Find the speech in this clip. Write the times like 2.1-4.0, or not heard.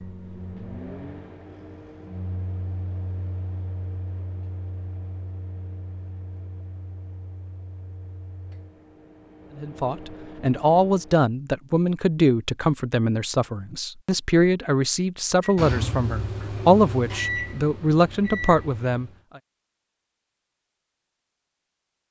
9.6-19.1.